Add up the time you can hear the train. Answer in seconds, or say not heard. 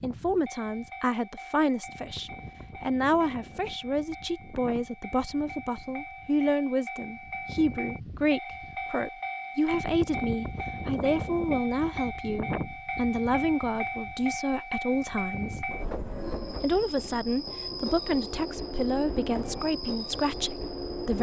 21 s.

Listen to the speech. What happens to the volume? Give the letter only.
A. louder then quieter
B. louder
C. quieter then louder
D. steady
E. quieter
D.